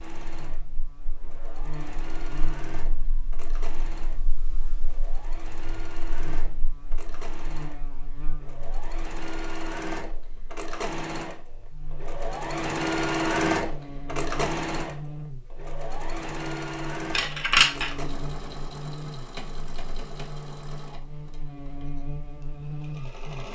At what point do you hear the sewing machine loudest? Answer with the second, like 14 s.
13 s.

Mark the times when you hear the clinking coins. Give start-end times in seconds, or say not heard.
17.1-17.9.